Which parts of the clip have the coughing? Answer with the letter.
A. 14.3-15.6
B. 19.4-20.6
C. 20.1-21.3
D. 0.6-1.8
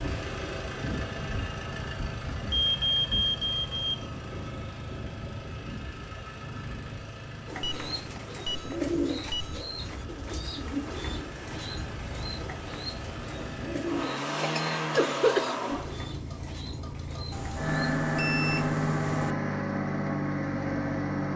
A.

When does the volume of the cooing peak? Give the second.
9 s.